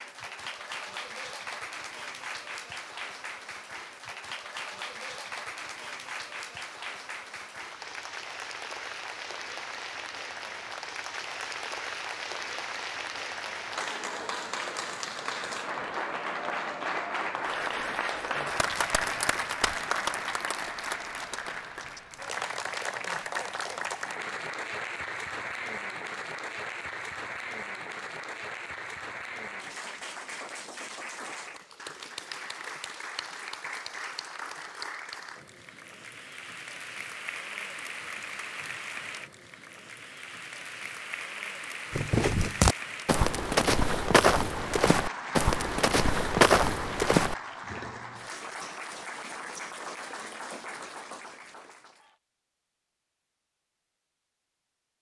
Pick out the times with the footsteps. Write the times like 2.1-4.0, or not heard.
41.9-47.4.